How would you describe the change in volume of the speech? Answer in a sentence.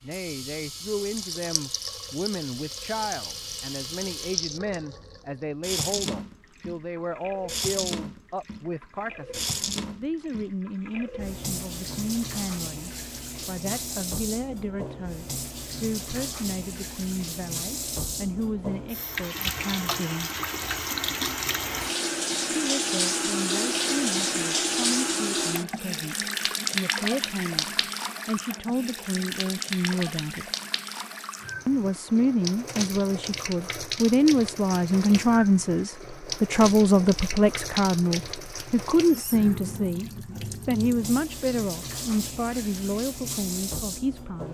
The volume of the speech goes up.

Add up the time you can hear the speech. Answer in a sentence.
The speech can be heard for 41 seconds in total.